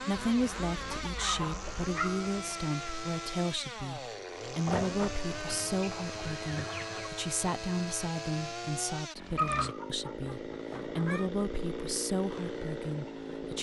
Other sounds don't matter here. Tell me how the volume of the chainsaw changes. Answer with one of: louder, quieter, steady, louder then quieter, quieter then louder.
steady.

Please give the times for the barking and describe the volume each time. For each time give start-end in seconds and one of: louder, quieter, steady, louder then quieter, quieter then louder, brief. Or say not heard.
not heard.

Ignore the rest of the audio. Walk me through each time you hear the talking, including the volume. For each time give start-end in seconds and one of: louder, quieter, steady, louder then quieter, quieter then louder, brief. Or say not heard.
0.0-13.5 steady.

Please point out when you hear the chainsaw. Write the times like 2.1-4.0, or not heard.
0.0-13.5.